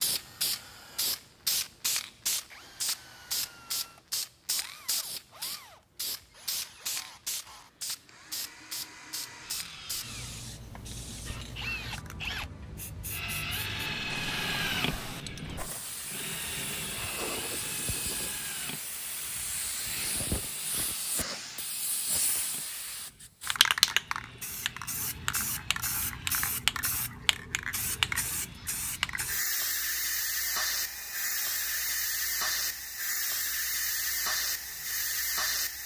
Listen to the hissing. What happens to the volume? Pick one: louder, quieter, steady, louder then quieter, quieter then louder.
quieter then louder.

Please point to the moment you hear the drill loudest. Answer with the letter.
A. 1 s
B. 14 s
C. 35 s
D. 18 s
B.